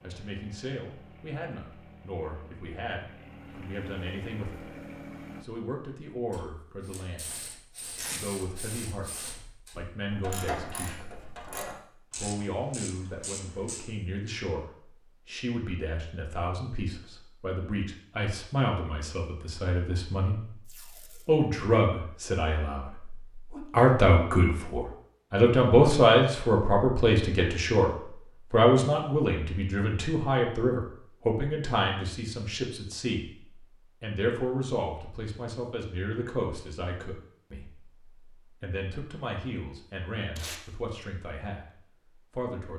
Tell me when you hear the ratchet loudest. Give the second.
10 s.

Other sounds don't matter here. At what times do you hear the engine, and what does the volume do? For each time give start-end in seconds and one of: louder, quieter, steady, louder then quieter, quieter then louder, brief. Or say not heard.
0.0-5.5 louder.